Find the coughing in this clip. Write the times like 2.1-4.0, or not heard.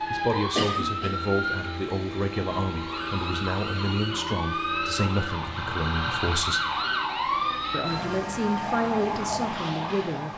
0.6-1.1.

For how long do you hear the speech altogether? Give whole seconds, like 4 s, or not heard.
9 s.